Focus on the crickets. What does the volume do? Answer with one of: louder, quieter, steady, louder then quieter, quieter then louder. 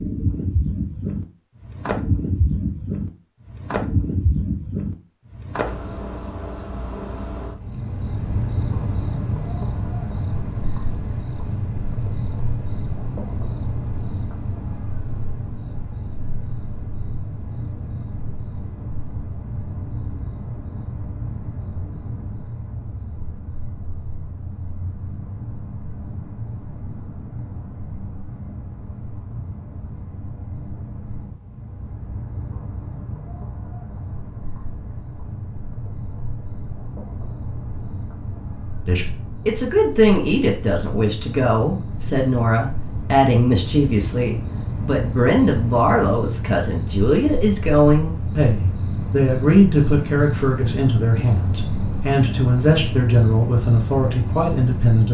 quieter then louder.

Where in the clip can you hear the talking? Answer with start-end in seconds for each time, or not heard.
38.9-55.0.